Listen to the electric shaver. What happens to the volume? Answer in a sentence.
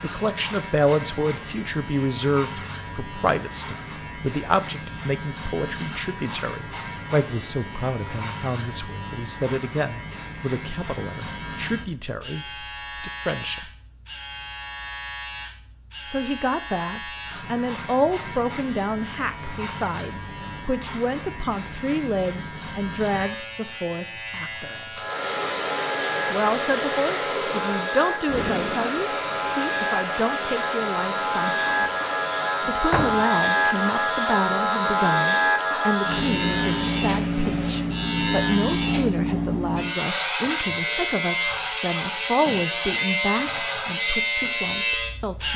The loudness of the electric shaver goes up.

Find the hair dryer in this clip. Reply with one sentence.
The hair dryer can be heard from 25.0 to 38.0 s.